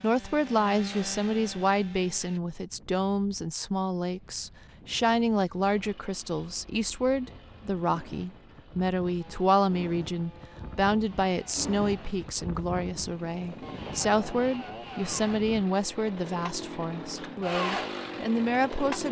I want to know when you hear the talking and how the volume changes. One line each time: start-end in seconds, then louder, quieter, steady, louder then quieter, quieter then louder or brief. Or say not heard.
0.0-19.0 steady.